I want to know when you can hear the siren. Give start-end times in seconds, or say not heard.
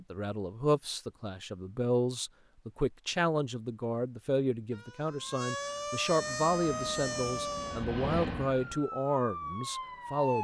4.7-10.3.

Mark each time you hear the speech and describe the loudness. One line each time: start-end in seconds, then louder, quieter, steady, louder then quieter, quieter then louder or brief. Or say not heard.
0.0-10.3 steady.